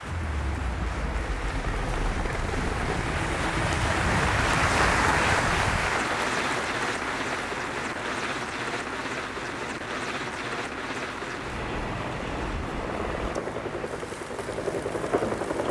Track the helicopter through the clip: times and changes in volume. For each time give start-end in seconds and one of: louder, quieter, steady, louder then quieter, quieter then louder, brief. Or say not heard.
0.0-15.6 steady.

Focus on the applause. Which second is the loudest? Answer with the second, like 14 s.
5 s.